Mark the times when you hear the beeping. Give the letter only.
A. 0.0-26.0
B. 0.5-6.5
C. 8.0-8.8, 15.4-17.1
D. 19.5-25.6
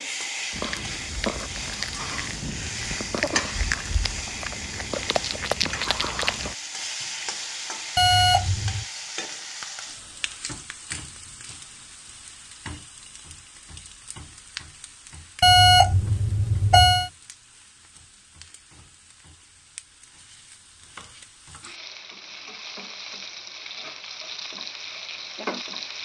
C.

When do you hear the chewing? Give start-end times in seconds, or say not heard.
0.5-6.5.